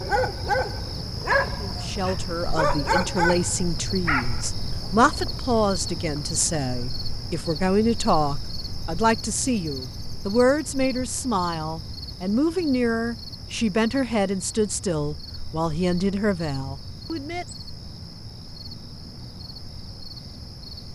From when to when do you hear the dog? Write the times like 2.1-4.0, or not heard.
0.0-4.5.